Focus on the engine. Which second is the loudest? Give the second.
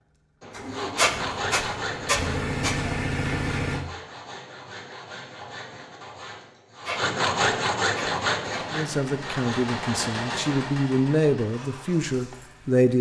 3 s.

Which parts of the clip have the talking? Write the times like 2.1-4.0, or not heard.
8.7-12.9.